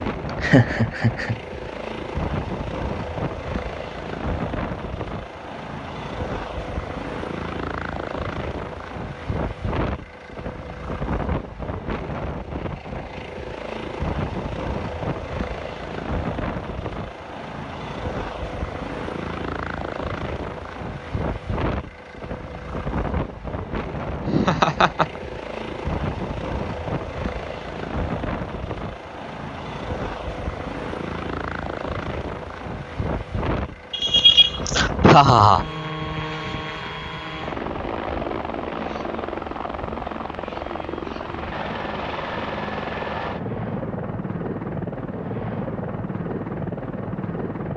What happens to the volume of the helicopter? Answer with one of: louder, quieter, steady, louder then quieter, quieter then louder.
steady.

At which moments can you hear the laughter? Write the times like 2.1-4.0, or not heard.
0.4-1.4, 24.2-25.2, 33.9-35.6.